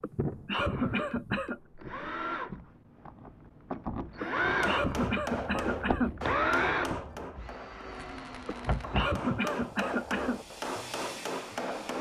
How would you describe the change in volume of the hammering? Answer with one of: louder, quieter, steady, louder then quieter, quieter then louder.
quieter then louder.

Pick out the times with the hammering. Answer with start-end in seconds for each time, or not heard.
4.5-11.9.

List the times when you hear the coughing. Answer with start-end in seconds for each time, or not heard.
0.0-1.6, 4.2-6.2, 8.4-10.4.